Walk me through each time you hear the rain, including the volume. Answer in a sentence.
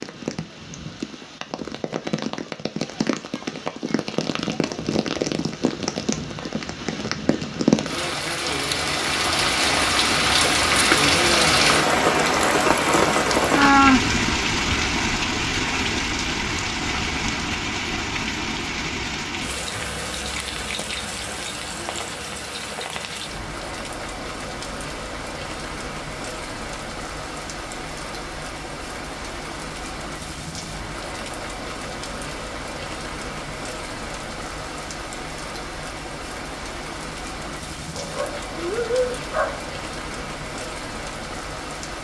You can hear the rain from 0.0 to 41.9 s, getting louder then quieter.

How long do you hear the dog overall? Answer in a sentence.
The dog can be heard for 2 seconds in total.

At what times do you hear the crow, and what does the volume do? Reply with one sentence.
The crow can't be heard in this clip.